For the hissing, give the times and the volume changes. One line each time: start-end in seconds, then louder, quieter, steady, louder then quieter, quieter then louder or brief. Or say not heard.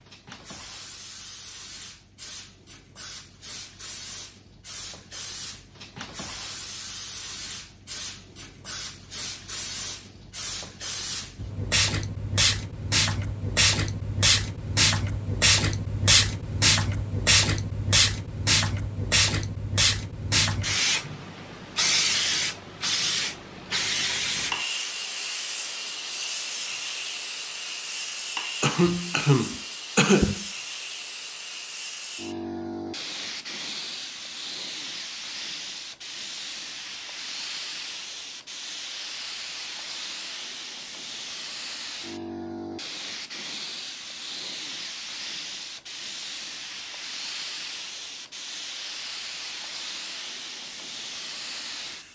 0.0-52.0 louder then quieter.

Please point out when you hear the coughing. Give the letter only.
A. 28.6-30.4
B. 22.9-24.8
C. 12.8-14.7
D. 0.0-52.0
A.